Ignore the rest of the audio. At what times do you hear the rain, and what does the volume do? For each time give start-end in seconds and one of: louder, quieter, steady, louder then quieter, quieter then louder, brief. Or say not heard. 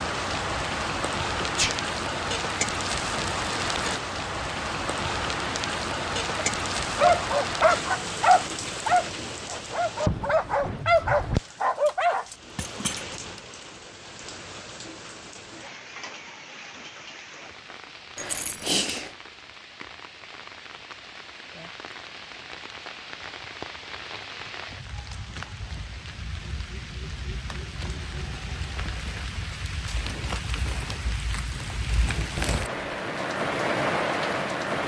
0.0-34.8 quieter then louder.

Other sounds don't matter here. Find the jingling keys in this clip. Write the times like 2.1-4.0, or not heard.
11.8-13.4, 18.1-19.1.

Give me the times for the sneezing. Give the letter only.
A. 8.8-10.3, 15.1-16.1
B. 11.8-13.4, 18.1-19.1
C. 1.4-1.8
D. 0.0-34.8
C.